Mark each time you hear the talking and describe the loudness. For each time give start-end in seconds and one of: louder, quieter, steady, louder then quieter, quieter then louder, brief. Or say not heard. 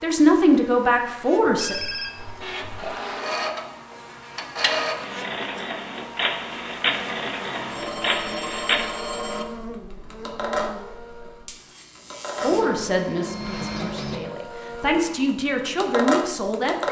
0.0-1.8 brief
12.4-16.8 quieter then louder.